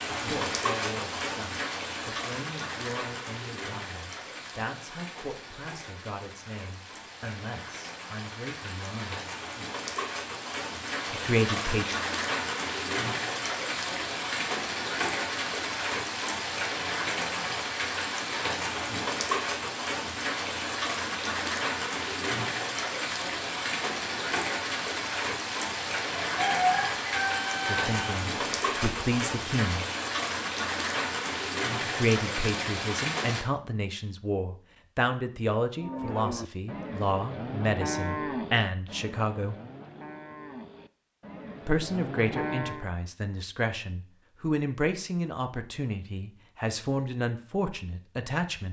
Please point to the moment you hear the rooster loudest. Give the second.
27 s.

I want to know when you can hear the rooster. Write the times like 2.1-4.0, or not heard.
26.4-28.1.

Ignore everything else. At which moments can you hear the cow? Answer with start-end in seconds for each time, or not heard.
35.8-42.9.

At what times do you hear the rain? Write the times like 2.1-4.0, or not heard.
0.0-33.5.